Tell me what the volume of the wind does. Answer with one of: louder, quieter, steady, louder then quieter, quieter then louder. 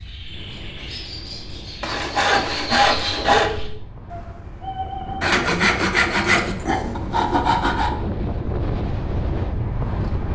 louder.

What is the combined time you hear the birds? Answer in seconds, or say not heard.
5 s.